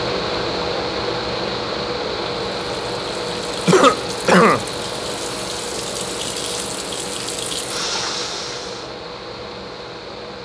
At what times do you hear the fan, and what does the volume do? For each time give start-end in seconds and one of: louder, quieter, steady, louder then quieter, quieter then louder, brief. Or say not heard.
0.0-10.4 quieter.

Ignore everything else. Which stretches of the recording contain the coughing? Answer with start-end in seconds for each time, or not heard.
3.6-4.7.